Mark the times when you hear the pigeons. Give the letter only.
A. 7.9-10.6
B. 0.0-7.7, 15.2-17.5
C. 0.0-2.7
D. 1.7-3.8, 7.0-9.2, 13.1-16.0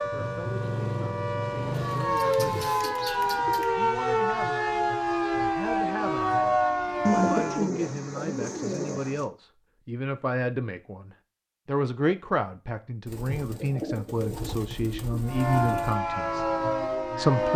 D.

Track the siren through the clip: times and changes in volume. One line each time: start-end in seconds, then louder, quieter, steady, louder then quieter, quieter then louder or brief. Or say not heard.
0.0-7.7 louder
15.2-17.5 brief.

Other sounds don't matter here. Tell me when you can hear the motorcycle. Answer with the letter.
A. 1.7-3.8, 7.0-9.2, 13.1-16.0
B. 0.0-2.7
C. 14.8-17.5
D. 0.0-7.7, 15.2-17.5
B.